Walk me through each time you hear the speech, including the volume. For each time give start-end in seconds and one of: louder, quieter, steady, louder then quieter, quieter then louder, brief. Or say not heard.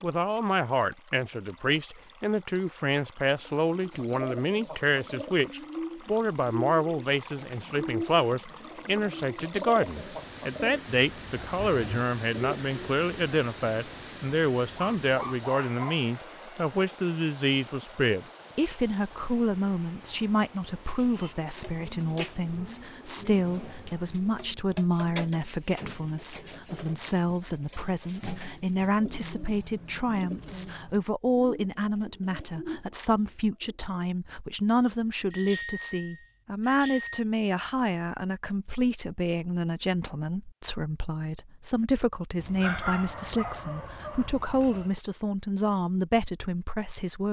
0.0-47.2 steady.